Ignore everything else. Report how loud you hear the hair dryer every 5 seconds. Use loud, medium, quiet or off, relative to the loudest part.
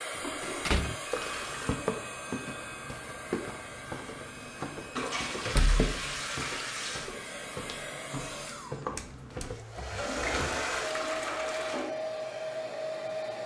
medium, medium, loud.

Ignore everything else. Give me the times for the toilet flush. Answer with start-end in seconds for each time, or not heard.
0.2-1.8, 5.0-7.2, 9.8-11.9.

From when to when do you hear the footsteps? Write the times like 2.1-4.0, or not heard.
1.1-9.6.